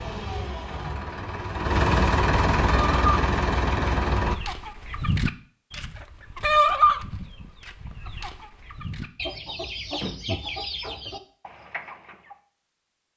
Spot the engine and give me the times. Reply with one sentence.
You can hear the engine from 0.0 to 4.3 s.